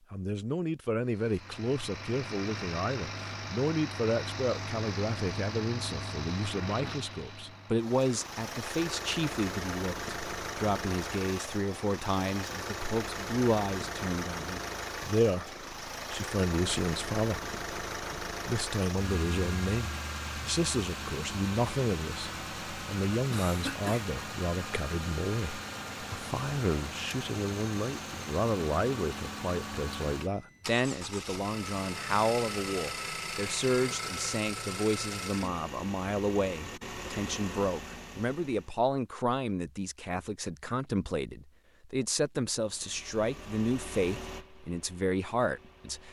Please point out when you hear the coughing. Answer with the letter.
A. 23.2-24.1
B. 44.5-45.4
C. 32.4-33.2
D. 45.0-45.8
A.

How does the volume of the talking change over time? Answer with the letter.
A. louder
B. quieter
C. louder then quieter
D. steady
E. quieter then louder
D.